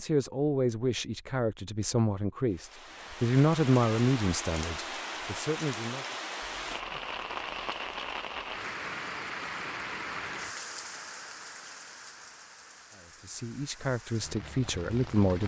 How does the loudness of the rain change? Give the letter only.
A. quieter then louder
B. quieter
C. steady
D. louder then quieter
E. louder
B.